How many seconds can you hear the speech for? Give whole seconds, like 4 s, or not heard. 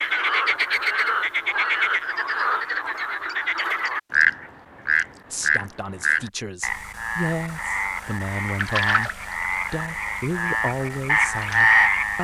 7 s.